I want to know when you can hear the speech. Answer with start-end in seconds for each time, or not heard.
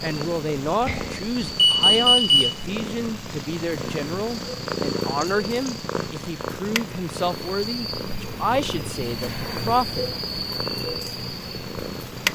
0.0-10.2.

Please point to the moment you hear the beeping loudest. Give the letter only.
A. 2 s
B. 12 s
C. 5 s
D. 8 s
A.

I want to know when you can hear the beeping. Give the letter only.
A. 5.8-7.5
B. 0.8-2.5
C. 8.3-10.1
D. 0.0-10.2
B.